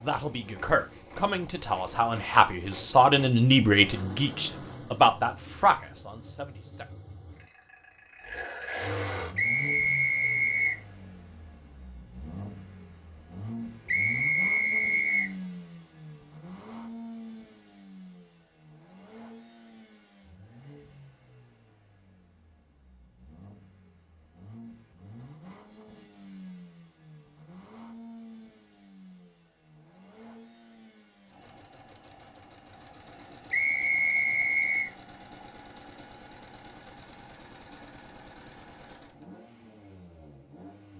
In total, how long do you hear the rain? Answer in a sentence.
You can't hear the rain here.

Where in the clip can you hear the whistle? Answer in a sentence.
You can hear the whistle from 9.3 to 10.8 s, from 13.8 to 15.3 s and from 33.5 to 34.9 s.